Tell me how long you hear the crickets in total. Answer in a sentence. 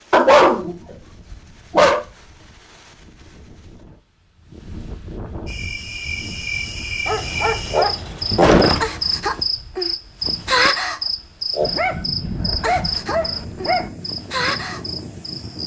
You can hear the crickets for 10 seconds altogether.